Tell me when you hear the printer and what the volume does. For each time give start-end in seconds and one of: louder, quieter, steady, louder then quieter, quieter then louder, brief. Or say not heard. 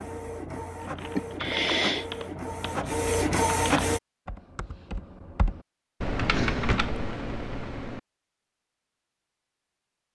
0.0-4.0 louder.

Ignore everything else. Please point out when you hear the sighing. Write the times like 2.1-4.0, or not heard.
1.1-2.1, 6.3-6.8.